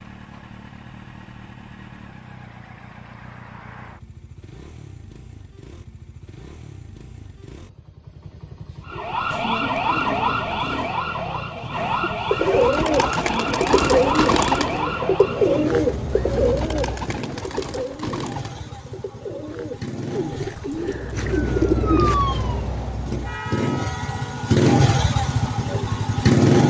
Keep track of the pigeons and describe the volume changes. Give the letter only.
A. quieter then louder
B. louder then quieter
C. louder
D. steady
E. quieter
A.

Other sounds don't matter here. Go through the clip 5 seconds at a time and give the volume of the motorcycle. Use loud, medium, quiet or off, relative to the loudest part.
quiet, quiet, quiet, quiet, medium, loud.